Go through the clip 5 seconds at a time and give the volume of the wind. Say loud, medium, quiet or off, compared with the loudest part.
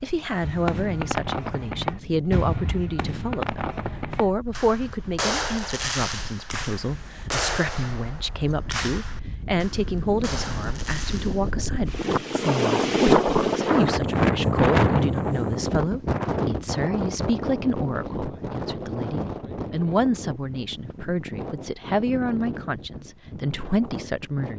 quiet, quiet, loud, medium, quiet.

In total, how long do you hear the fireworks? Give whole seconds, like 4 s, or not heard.
11 s.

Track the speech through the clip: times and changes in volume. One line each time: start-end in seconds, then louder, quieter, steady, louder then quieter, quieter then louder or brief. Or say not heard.
0.0-24.5 steady.